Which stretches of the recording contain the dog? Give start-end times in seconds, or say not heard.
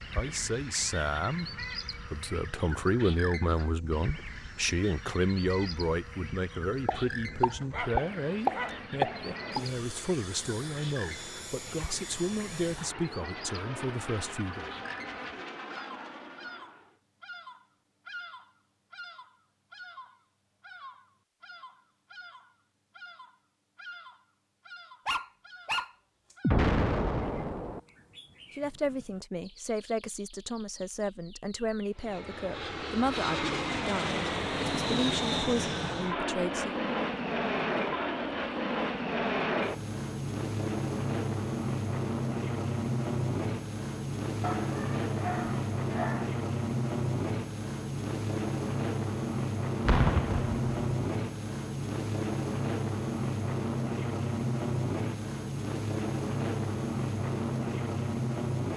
7.6-8.8, 25.1-26.4, 44.4-46.4.